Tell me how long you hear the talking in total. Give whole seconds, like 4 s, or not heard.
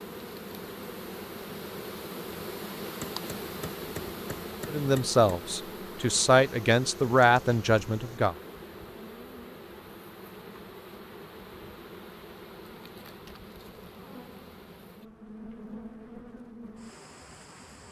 4 s.